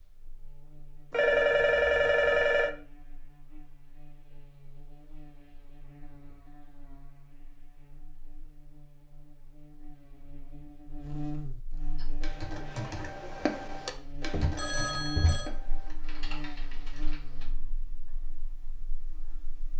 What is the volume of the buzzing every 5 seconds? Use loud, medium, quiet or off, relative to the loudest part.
quiet, quiet, loud, loud.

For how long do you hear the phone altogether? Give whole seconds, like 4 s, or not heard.
3 s.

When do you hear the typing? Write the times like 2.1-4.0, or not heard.
11.9-17.4.